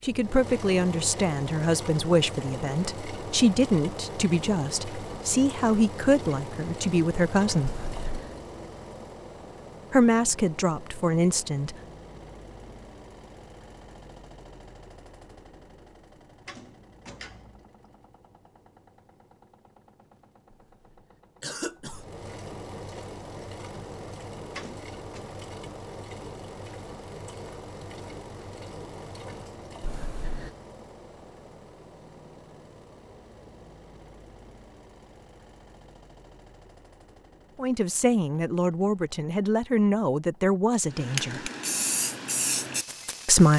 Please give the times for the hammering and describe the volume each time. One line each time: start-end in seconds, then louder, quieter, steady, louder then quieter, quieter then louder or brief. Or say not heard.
not heard.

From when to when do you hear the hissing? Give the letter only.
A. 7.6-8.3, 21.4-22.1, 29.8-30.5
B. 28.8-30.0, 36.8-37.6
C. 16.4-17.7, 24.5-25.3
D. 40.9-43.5
D.